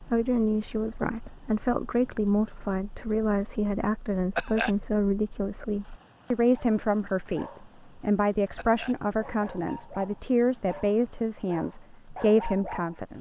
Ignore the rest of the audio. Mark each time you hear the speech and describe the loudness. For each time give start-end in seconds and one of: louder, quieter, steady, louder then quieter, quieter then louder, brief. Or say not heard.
0.0-13.1 steady.